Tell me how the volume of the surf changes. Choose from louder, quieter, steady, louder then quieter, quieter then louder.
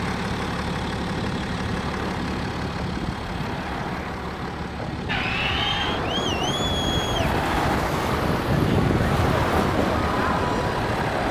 louder.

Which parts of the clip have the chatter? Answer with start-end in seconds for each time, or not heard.
5.0-11.2.